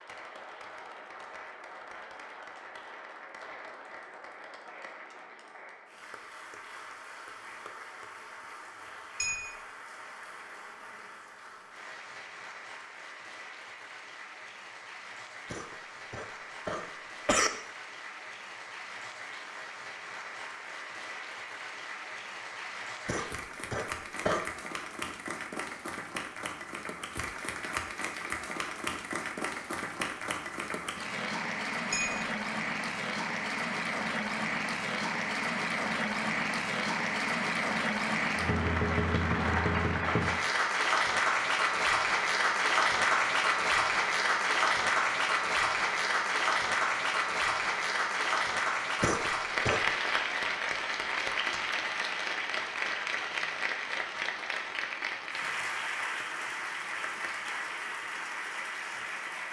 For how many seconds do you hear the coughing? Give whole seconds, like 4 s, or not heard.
4 s.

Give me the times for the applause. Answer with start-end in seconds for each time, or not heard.
0.0-59.4.